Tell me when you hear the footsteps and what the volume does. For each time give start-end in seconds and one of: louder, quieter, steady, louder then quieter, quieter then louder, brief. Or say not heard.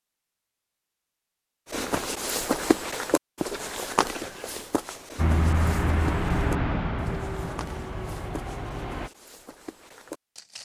1.7-10.6 quieter.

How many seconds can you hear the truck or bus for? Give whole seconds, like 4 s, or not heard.
4 s.